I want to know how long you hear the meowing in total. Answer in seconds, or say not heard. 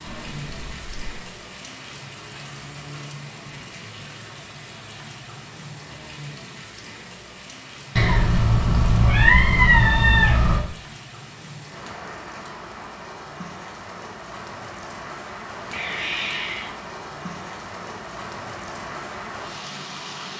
5 s.